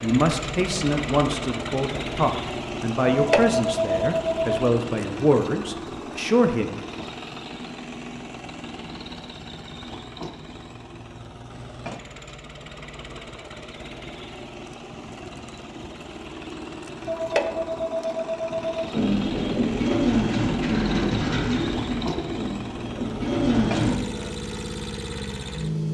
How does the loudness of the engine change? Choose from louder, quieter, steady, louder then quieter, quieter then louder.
quieter then louder.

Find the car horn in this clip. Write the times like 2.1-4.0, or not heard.
not heard.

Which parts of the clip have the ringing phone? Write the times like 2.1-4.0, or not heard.
3.0-4.7, 17.1-18.9.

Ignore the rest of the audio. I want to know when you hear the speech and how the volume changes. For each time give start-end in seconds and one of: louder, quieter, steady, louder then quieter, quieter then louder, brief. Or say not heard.
0.0-6.7 steady.